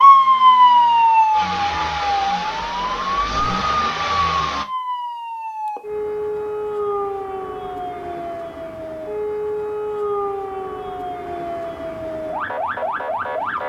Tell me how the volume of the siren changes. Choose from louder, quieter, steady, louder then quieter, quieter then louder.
quieter.